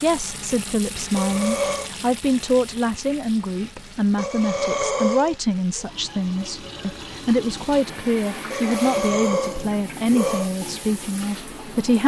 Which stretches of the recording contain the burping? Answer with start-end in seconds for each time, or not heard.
1.1-1.9, 4.2-5.8, 8.5-10.5.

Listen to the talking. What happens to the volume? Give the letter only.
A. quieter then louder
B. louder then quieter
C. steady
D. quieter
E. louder
C.